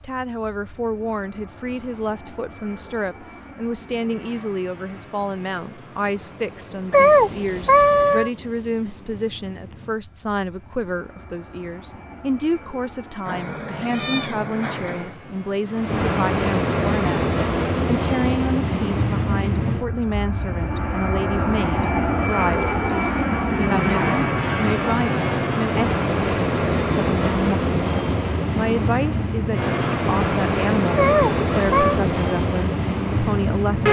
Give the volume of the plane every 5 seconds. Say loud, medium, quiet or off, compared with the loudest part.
quiet, quiet, quiet, loud, loud, loud, loud.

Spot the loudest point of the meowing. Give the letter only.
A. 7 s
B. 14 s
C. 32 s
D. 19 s
A.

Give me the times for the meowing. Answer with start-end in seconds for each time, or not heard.
6.9-8.3, 13.2-15.2, 30.9-32.0.